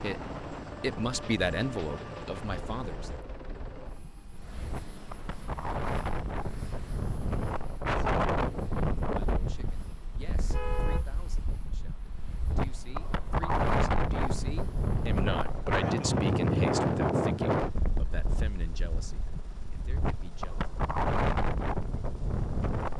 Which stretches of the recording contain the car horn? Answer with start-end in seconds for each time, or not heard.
10.4-11.1.